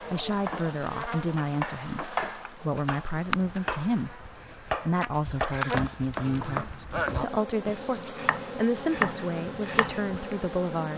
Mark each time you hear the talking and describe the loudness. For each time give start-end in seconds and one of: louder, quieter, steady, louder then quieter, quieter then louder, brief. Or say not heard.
0.1-10.9 steady.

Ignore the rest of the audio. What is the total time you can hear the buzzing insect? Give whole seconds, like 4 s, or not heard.
11 s.